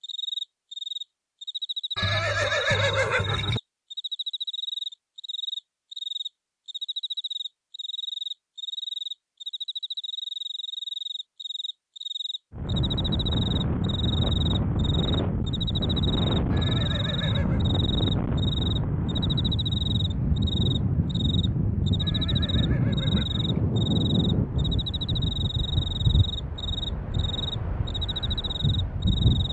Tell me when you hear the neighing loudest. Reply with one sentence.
The volume of the neighing peaks at 3 seconds.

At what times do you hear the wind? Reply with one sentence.
You can hear the wind from 12.5 to 29.4 s.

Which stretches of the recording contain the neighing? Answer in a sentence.
You can hear the neighing from 1.9 to 3.6 s, from 16.5 to 17.6 s and from 22.0 to 23.6 s.